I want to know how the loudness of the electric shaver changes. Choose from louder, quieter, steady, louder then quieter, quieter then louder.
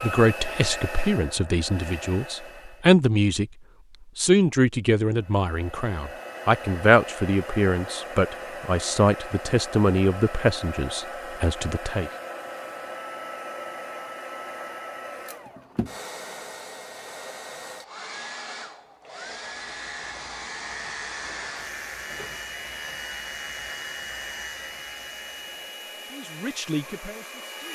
steady.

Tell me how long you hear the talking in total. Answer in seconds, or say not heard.
13 s.